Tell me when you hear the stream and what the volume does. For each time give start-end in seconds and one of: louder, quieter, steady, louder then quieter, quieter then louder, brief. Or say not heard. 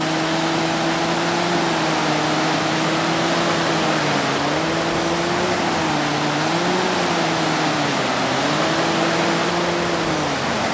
0.0-10.6 steady.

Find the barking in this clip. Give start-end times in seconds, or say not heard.
not heard.